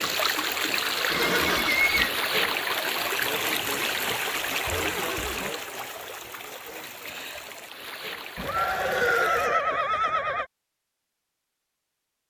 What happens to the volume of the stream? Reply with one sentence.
The volume of the stream goes down.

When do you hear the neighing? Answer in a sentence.
The neighing can be heard from 1.1 to 2.1 s, from 4.5 to 5.5 s and from 8.3 to 10.4 s.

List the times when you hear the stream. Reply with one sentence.
You can hear the stream from 0.0 to 9.5 s.